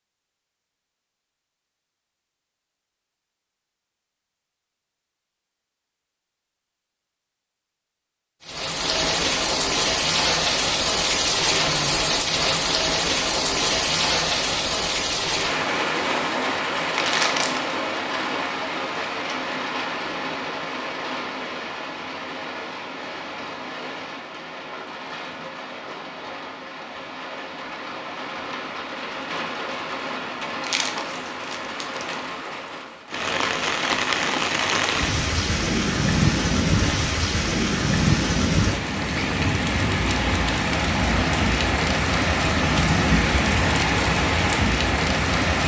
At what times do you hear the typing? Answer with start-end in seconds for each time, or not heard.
not heard.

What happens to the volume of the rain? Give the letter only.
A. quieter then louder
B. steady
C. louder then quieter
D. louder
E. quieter
A.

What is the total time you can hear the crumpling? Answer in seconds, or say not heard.
2 s.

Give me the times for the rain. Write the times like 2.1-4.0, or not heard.
8.4-45.6.